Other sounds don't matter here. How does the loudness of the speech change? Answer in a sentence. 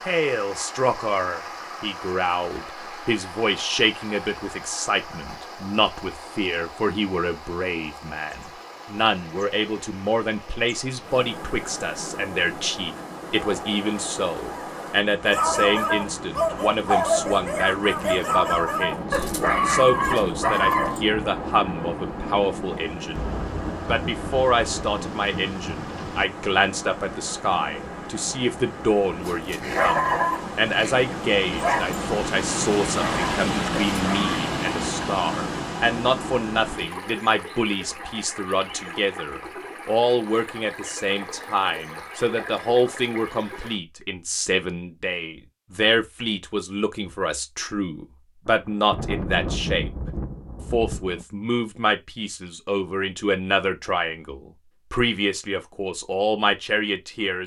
The loudness of the speech stays about the same.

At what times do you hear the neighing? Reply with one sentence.
You can't hear the neighing here.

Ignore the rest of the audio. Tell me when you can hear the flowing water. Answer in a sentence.
You can hear the flowing water from 0.0 to 43.8 s.